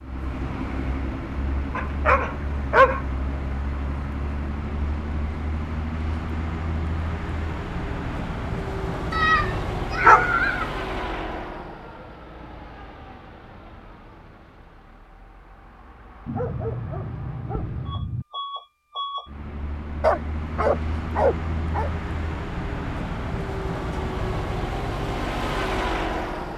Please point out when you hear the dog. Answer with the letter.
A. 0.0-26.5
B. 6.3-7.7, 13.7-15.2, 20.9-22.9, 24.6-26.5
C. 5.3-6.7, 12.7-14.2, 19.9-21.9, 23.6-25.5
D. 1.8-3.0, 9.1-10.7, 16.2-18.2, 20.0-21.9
D.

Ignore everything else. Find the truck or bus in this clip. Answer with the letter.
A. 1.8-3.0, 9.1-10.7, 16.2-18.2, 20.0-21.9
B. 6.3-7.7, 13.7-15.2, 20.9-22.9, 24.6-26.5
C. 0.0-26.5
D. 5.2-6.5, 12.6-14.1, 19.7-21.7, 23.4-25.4
C.